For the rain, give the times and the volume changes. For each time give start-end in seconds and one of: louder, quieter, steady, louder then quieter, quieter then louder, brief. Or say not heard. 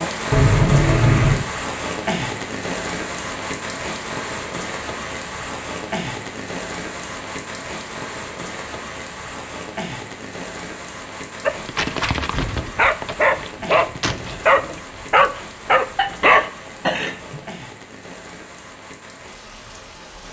0.0-20.2 quieter.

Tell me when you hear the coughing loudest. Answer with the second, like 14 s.
1 s.